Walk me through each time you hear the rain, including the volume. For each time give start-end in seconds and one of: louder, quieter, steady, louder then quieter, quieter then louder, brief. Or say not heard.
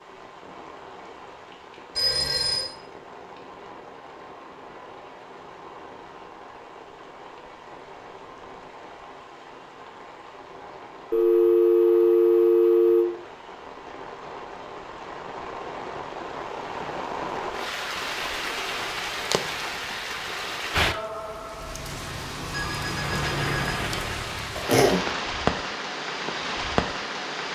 0.0-27.5 louder.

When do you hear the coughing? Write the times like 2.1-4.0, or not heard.
24.6-25.1.